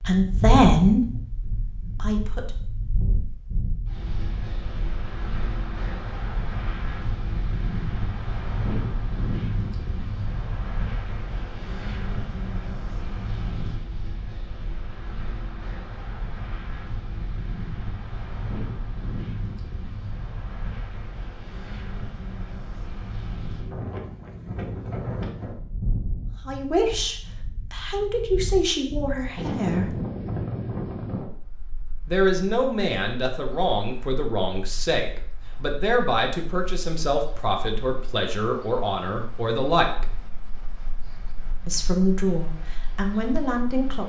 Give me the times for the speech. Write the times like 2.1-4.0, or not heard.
0.1-2.5, 26.4-29.9, 32.0-40.0, 41.6-44.0.